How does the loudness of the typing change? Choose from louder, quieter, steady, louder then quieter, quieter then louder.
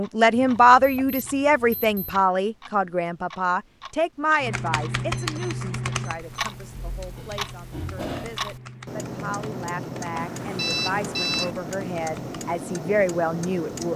quieter.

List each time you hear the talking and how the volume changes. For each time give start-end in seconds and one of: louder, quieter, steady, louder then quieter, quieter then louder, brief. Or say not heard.
0.0-13.9 quieter then louder.